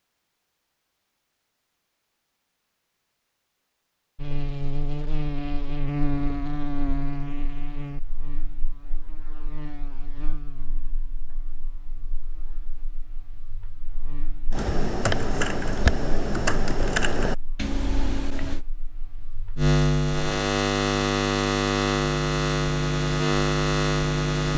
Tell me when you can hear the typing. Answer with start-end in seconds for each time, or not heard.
14.5-18.6.